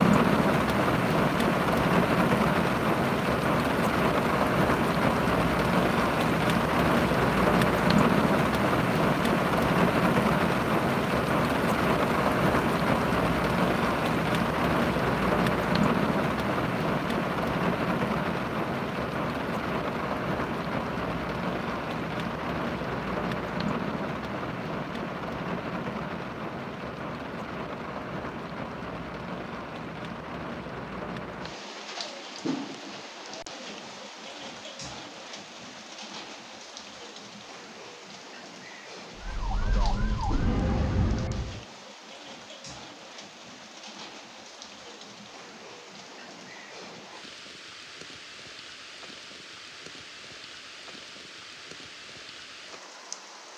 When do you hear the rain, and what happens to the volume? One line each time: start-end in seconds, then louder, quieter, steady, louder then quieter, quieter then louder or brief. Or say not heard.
0.0-53.5 quieter.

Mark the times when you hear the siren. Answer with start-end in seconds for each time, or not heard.
39.1-41.6.